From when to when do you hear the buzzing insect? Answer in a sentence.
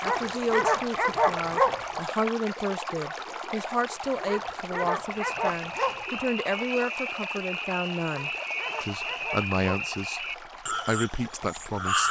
The buzzing insect can't be heard in this clip.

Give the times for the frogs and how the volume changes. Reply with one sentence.
The frogs can be heard from 5.0 to 12.0 s, at a steady volume.